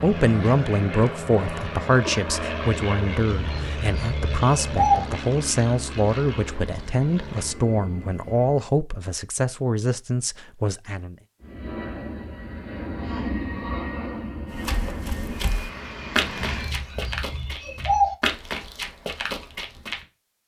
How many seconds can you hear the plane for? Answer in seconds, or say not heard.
14 s.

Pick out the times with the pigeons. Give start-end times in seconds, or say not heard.
3.3-5.0, 16.4-18.1.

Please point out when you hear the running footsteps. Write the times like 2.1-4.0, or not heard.
14.5-20.1.